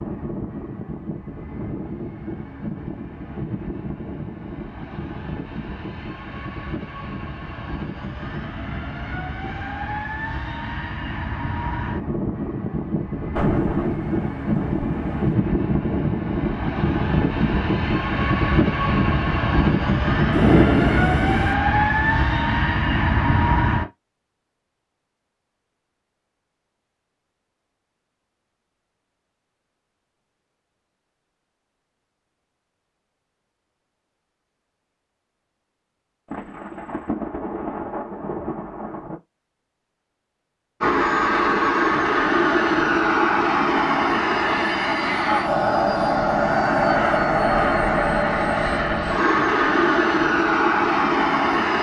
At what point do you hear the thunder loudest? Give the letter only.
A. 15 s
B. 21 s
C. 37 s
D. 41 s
B.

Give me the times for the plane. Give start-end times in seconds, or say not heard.
0.0-23.9, 40.8-51.7.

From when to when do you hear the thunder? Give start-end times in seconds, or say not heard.
13.3-15.3, 20.4-21.6, 36.3-39.2.